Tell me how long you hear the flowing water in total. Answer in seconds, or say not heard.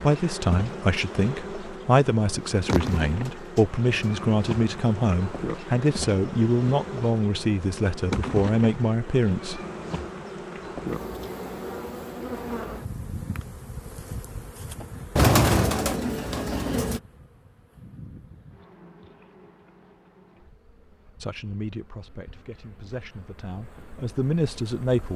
not heard.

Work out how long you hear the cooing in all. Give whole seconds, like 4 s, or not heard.
3 s.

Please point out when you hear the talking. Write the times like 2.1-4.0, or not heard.
0.0-9.6, 21.2-25.1.